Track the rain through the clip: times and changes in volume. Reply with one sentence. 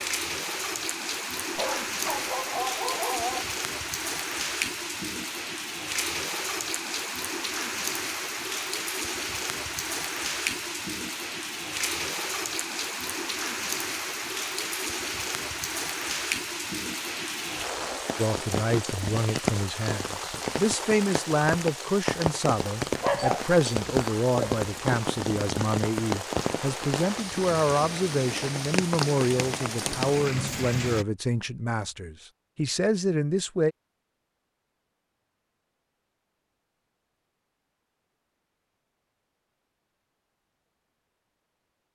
The rain can be heard from 0.0 to 31.1 s, at a steady volume.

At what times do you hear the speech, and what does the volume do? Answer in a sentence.
The speech can be heard from 18.1 to 33.8 s, at a steady volume.